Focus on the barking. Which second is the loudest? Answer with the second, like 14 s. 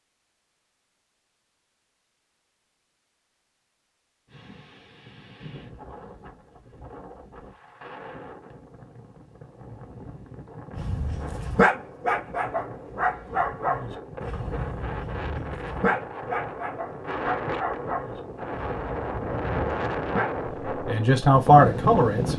12 s.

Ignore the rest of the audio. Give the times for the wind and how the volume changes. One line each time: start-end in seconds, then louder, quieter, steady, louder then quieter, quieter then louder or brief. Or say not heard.
4.2-22.3 louder.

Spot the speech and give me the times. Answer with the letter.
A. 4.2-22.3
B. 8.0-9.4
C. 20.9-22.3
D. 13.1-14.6
C.